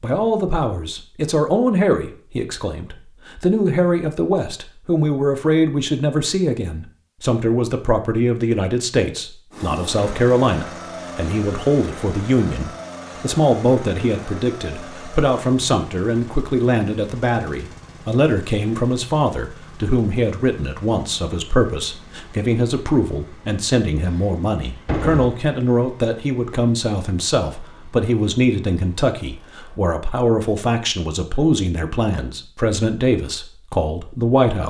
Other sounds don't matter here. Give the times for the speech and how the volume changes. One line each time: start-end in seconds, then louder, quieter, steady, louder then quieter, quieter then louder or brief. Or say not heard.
0.0-34.6 steady.